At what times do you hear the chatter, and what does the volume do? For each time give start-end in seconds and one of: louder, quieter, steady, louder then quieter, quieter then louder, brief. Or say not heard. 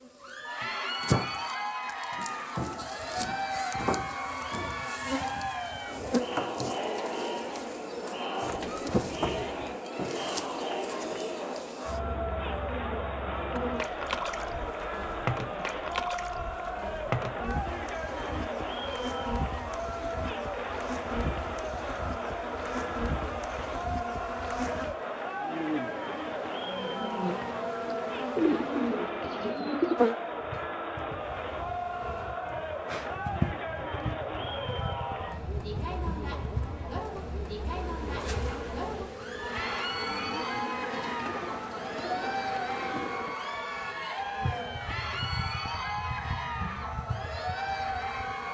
0.1-48.4 steady.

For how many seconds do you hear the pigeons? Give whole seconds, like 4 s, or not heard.
5 s.